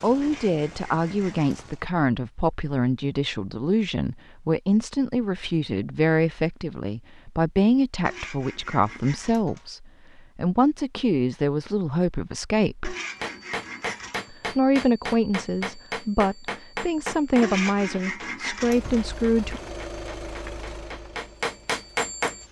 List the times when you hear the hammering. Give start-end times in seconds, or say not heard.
13.0-22.4.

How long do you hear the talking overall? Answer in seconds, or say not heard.
18 s.